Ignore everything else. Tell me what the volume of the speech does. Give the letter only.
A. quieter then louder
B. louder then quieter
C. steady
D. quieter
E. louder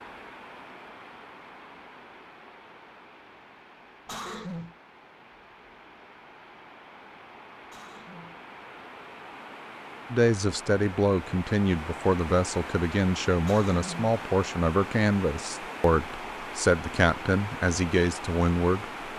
C.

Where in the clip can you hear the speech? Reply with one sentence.
The speech can be heard from 10.1 to 18.9 s.